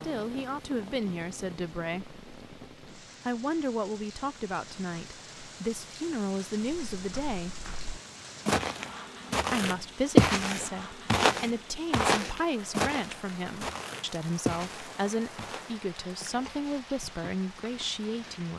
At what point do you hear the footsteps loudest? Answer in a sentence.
The volume of the footsteps peaks at 10 seconds.